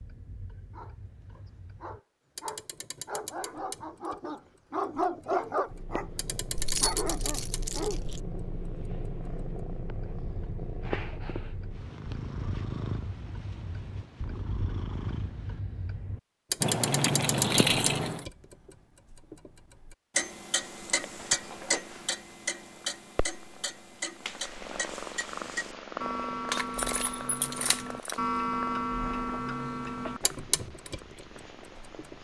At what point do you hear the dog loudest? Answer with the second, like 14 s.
5 s.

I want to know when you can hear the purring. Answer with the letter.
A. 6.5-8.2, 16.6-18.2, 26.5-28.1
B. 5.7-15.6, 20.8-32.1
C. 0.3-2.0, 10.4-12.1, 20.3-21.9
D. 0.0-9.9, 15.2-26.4
B.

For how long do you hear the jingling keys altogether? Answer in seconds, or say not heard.
5 s.